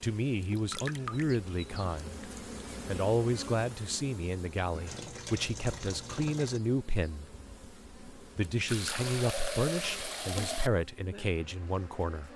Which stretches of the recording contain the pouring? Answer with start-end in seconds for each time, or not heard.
0.4-1.4, 4.8-6.6, 8.7-10.7.